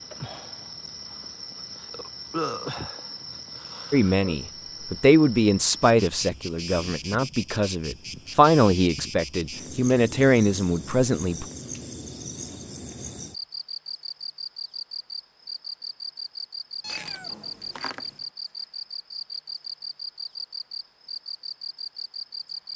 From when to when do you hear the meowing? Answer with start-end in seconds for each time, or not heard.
16.8-18.2.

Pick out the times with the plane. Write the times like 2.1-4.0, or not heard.
not heard.